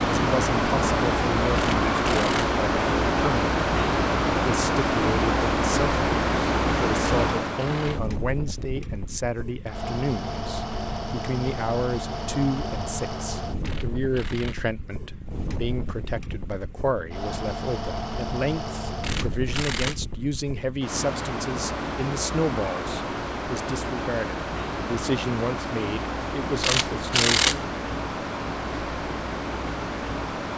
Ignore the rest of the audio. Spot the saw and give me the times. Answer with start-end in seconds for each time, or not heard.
not heard.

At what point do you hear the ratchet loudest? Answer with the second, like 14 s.
27 s.